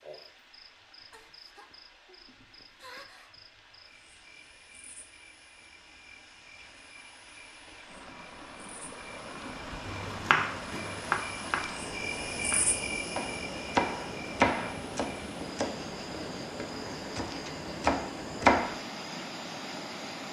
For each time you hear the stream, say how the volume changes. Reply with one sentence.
You can hear the stream from 0.0 to 20.2 s, getting louder.